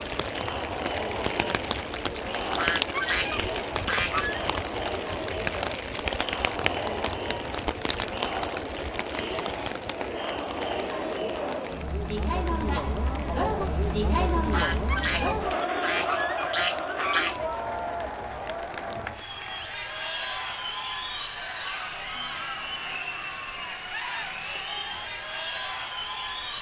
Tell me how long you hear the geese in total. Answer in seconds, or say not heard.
5 s.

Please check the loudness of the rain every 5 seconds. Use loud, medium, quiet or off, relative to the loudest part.
loud, loud, medium, quiet, quiet, quiet.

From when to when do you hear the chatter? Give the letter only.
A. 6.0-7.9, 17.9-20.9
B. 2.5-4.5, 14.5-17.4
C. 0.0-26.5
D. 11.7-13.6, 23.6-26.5
C.